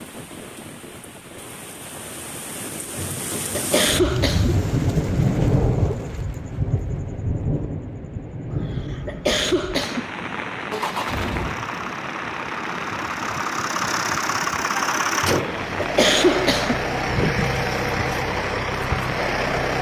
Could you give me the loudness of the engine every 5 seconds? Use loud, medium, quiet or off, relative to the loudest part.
off, off, loud, loud.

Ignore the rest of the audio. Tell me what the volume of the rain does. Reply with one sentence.
The volume of the rain goes up, then down.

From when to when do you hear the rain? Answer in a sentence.
You can hear the rain from 0.0 to 19.7 s.